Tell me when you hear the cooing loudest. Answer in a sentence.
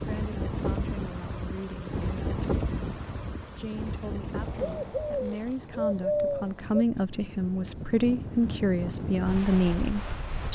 The loudest moment of the cooing is at 6 seconds.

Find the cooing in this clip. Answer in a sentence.
You can hear the cooing from 4.3 to 6.8 s.